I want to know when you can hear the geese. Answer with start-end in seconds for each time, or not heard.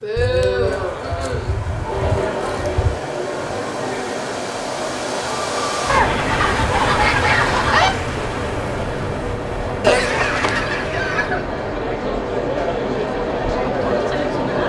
0.1-3.0, 5.8-7.9, 9.8-11.4.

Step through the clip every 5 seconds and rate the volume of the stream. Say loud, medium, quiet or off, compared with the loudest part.
medium, loud, medium.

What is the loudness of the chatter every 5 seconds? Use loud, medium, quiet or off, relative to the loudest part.
loud, medium, loud.